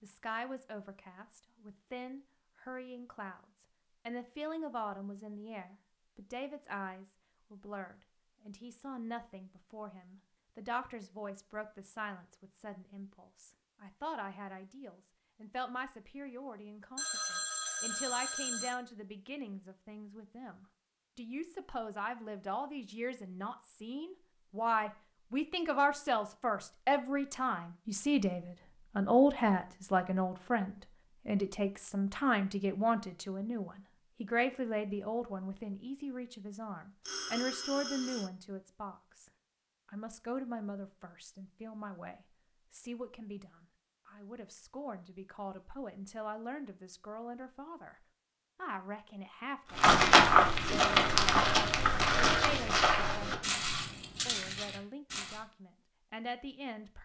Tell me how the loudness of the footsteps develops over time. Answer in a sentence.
The loudness of the footsteps goes down.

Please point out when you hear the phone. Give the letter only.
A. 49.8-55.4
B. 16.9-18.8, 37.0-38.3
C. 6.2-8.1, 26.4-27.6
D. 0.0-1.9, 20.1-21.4
B.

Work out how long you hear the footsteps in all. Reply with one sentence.
The footsteps can be heard for 6 seconds in total.